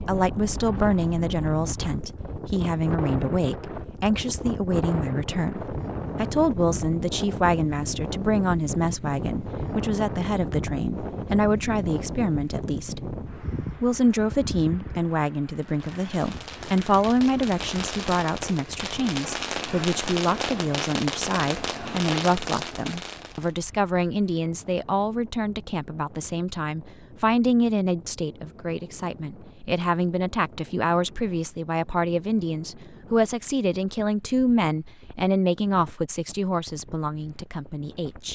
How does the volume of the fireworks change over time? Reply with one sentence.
The loudness of the fireworks goes up.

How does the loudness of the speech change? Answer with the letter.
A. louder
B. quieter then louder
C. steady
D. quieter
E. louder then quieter
C.